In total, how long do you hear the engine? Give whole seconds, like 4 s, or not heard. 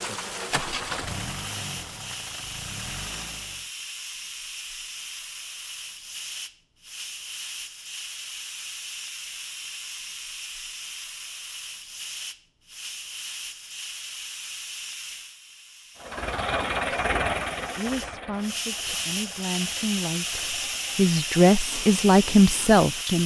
11 s.